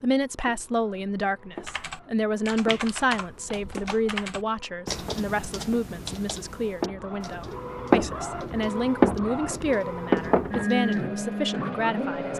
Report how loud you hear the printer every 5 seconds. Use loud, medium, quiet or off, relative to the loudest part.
quiet, loud, loud.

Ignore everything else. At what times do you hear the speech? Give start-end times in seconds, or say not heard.
0.0-12.3.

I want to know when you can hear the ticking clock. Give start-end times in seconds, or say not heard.
not heard.